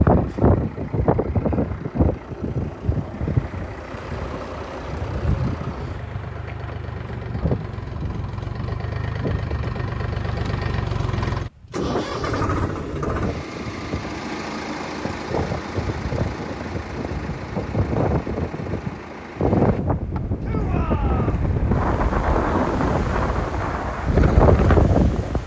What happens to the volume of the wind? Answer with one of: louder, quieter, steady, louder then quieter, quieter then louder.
quieter then louder.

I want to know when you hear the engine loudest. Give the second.
12 s.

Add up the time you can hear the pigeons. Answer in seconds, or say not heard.
not heard.